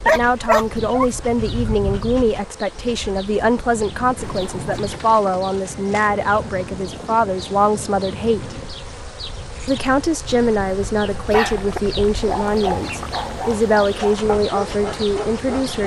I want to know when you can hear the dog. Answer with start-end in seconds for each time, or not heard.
0.0-2.3, 10.2-15.8.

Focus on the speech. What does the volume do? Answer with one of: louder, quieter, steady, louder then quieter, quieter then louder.
steady.